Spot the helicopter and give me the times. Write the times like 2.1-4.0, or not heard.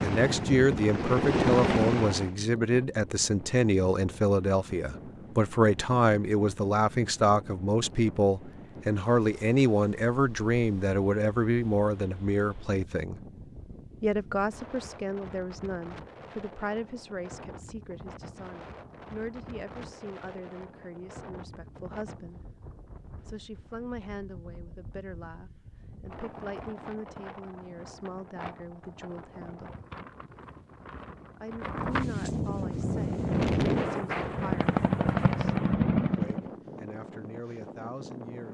0.0-2.4, 32.6-36.5.